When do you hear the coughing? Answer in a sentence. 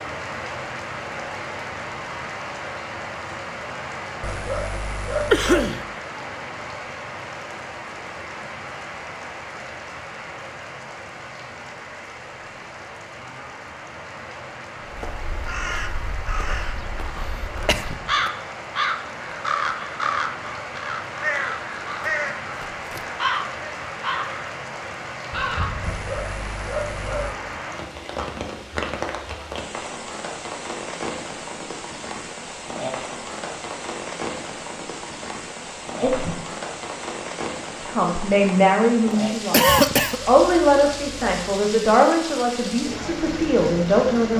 The coughing can be heard from 5.3 to 5.8 s, from 17.1 to 18.3 s and from 39.5 to 40.2 s.